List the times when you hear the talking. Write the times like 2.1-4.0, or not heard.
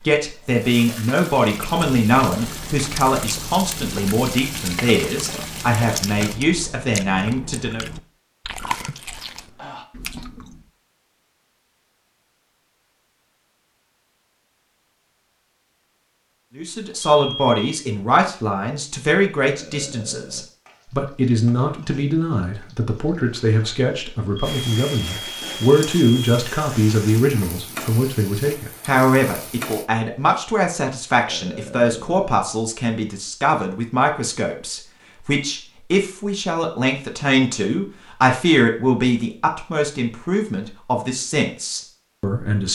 0.0-7.8, 16.6-42.7.